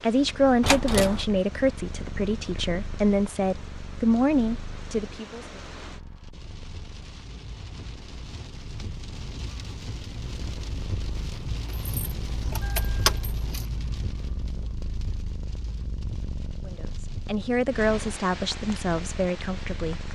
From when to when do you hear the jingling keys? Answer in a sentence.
You can hear the jingling keys from 0.6 to 1.2 s and from 11.7 to 13.7 s.